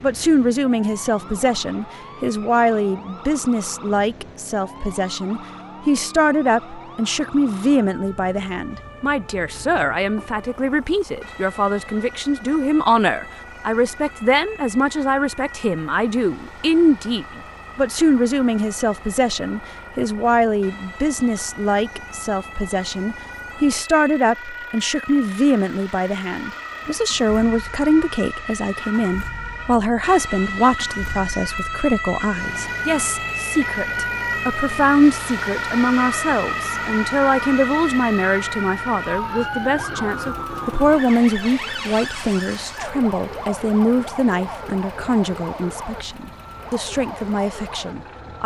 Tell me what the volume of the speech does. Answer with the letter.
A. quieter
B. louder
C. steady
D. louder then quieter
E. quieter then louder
C.